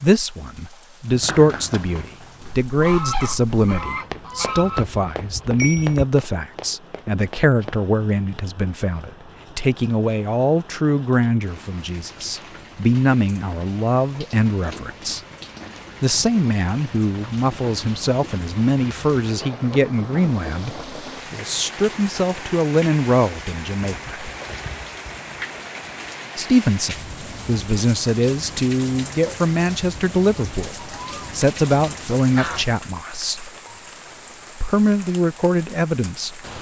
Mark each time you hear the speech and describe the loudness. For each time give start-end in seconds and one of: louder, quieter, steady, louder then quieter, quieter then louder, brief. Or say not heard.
0.0-15.2 steady
16.0-24.1 steady
26.4-33.5 steady
34.5-36.4 brief.